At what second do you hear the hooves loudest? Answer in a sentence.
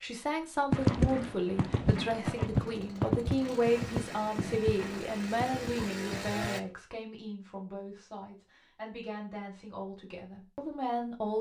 The loudest moment of the hooves is at 1 second.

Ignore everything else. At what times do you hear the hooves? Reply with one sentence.
You can hear the hooves from 0.7 to 6.5 s.